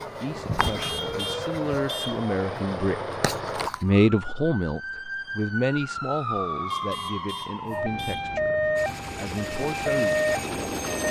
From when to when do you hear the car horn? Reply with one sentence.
You can hear the car horn from 0.6 to 2.3 s and from 6.7 to 8.4 s.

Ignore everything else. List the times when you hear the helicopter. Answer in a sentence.
You can hear the helicopter from 0.0 to 3.7 s and from 8.8 to 11.0 s.